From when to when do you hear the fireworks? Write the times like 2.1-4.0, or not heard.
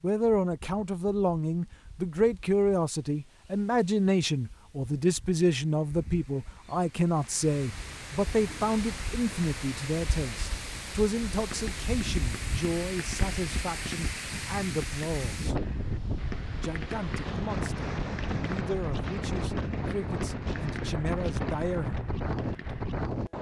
11.3-23.1.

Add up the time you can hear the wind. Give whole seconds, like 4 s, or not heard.
23 s.